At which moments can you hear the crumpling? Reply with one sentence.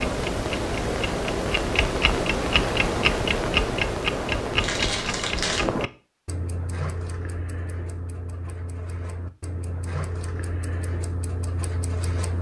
The crumpling can be heard from 4.6 to 5.7 s.